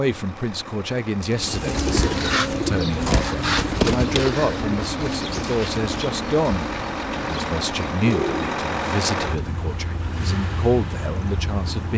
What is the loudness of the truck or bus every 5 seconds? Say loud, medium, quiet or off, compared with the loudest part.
medium, loud, loud.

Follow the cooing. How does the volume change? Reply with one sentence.
The volume of the cooing goes down.